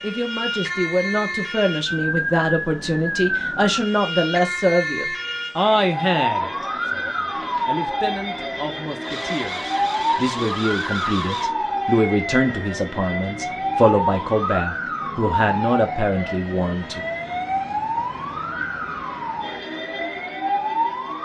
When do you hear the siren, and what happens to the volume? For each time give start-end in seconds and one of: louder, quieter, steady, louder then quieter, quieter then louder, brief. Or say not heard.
0.0-21.2 steady.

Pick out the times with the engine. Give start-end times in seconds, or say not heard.
9.0-11.6.